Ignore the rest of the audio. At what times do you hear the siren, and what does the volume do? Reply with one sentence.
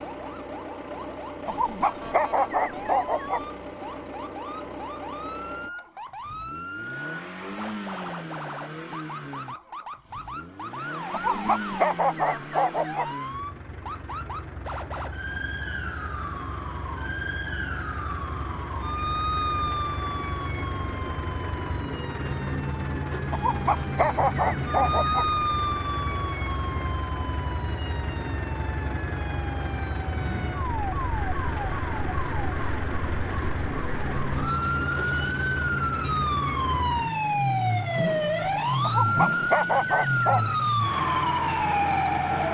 The siren can be heard from 0.0 to 42.5 s, getting louder.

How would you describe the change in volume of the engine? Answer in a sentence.
The loudness of the engine goes up.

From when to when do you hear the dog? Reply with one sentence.
You can hear the dog from 1.4 to 3.4 s, from 11.1 to 13.1 s, from 23.3 to 25.2 s and from 38.8 to 40.5 s.